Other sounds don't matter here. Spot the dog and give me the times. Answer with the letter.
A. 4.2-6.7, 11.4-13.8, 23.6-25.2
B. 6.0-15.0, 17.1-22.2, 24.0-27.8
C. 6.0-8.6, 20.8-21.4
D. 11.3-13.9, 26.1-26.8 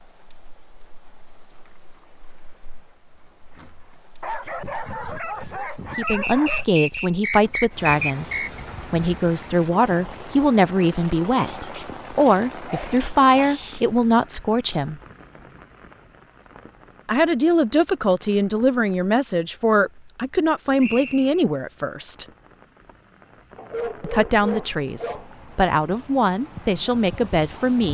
A.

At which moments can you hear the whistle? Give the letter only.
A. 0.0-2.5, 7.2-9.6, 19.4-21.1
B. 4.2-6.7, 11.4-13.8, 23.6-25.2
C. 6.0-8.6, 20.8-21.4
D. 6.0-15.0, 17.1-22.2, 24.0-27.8
C.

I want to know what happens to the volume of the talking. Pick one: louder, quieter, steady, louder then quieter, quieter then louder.
steady.